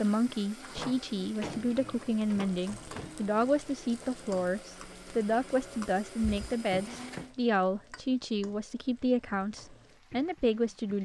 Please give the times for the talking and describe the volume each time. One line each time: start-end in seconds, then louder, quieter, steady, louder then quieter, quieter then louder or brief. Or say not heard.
0.0-11.0 steady.